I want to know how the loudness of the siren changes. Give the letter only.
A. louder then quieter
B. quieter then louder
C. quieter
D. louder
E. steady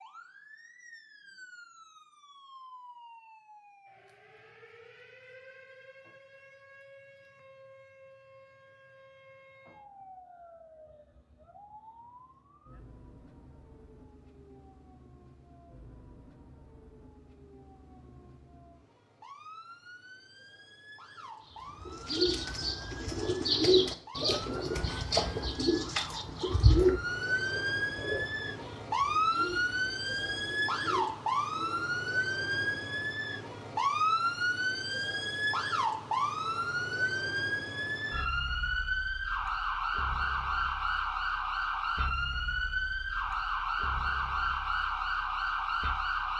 D.